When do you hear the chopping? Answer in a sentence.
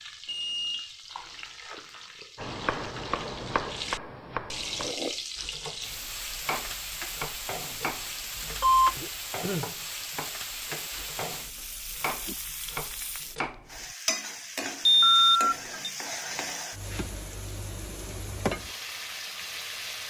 The chopping can be heard from 2.4 to 13.9 s.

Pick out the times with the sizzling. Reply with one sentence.
You can hear the sizzling from 0.0 to 20.0 s.